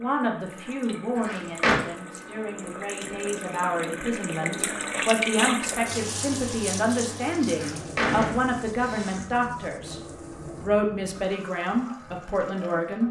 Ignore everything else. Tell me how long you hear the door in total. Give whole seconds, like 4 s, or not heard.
2 s.